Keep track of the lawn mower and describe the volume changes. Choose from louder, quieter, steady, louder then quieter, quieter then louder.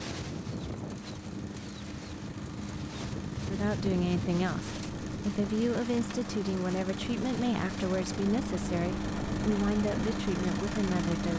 louder.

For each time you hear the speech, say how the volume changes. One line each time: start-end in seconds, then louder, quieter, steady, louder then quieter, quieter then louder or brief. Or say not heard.
3.5-11.3 steady.